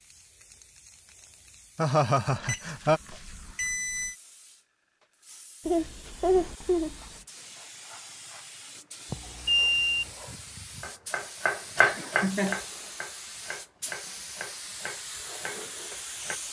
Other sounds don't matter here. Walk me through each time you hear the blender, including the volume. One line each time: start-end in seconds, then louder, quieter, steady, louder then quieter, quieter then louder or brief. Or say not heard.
not heard.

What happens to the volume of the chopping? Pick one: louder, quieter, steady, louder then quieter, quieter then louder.
quieter.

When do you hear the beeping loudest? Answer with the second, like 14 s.
10 s.